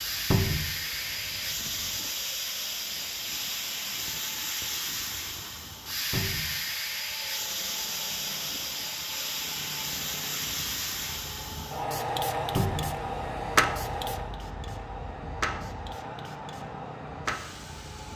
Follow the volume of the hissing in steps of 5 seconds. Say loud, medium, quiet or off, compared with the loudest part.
loud, loud, loud, medium.